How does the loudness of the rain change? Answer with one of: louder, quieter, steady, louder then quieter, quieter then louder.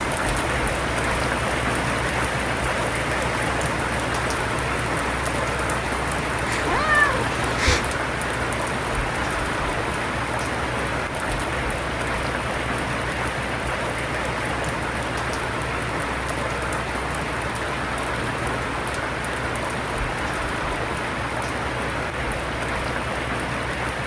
steady.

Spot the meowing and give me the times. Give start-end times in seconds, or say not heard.
6.5-7.9.